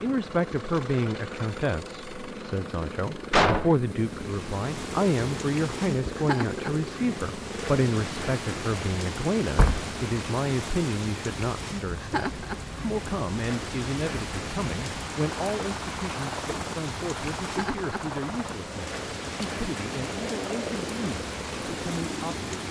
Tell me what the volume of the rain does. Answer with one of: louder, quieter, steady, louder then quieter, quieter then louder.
steady.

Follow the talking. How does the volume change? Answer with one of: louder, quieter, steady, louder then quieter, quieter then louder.
quieter.